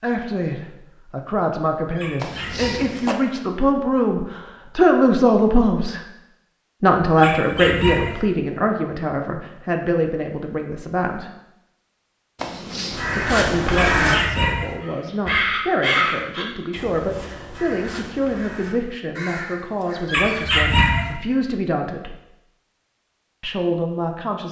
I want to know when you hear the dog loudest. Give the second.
21 s.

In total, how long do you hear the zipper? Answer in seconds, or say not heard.
2 s.